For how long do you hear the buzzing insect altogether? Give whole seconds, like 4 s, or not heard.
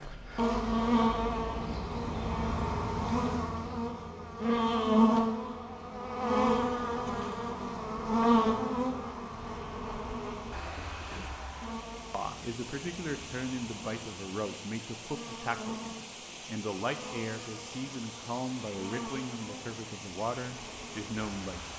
22 s.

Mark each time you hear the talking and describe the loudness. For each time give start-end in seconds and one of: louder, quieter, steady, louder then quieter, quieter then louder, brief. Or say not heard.
12.1-21.7 steady.